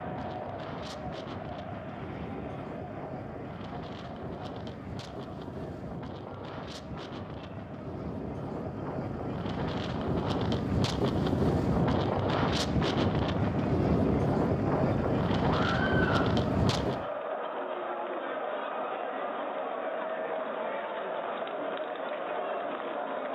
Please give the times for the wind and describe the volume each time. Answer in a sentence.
You can hear the wind from 0.0 to 17.1 s, getting louder.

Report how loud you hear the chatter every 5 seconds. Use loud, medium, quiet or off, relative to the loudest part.
medium, quiet, medium, loud, loud.